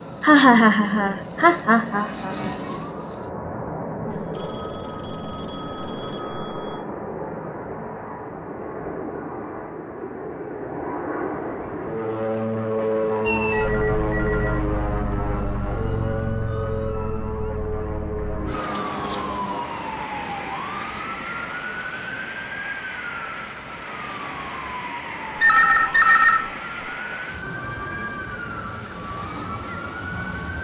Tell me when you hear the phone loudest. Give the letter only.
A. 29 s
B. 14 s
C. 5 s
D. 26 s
D.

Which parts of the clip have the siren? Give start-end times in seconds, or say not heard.
0.0-3.3, 13.2-30.5.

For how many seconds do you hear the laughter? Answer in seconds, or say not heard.
3 s.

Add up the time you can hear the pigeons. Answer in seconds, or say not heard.
not heard.